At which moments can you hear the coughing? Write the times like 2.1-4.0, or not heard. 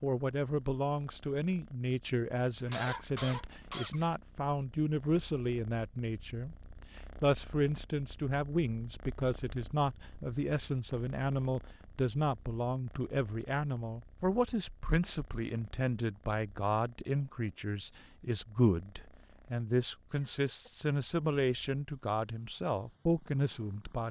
2.5-4.2, 20.1-20.8.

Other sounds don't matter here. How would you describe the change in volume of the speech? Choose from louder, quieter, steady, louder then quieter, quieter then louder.
steady.